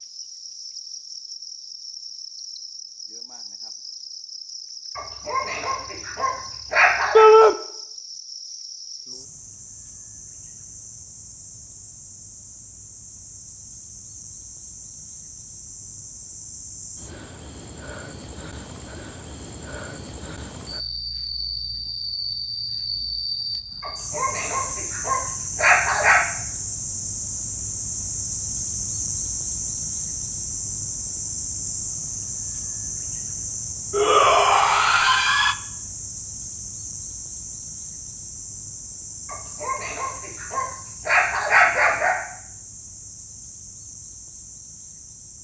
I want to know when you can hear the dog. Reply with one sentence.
You can hear the dog from 5.0 to 7.2 s, from 23.8 to 26.2 s and from 39.2 to 42.1 s.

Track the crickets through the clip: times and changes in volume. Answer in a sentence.
The crickets can be heard from 0.0 to 45.3 s, getting louder then quieter.